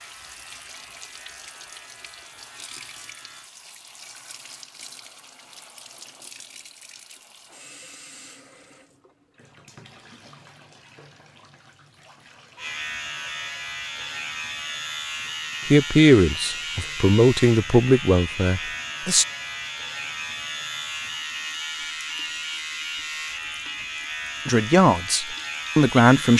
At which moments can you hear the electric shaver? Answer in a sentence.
The electric shaver can be heard from 0.0 to 3.5 s and from 12.6 to 26.3 s.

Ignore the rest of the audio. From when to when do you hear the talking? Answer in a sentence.
The talking can be heard from 15.7 to 19.2 s and from 24.4 to 26.3 s.